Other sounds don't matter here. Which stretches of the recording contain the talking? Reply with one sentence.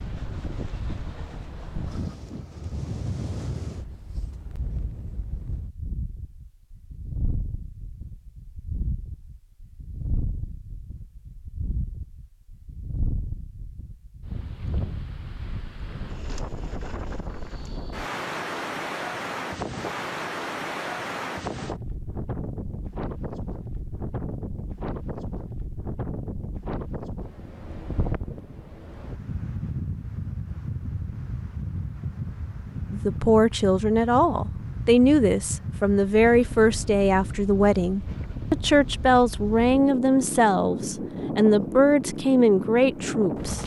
You can hear the talking from 32.9 to 43.6 s.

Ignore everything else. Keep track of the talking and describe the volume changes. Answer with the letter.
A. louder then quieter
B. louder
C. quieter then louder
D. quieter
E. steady
E.